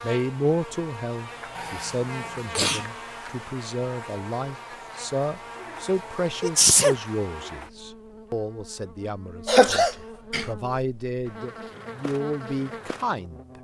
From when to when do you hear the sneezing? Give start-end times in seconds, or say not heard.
1.6-2.9, 6.4-7.0, 9.4-10.4.